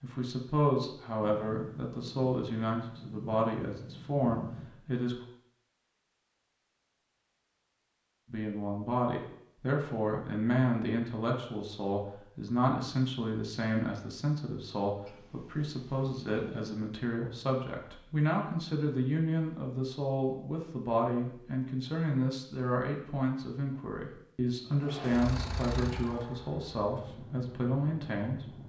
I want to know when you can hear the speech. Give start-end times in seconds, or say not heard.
0.0-5.2, 8.2-28.5.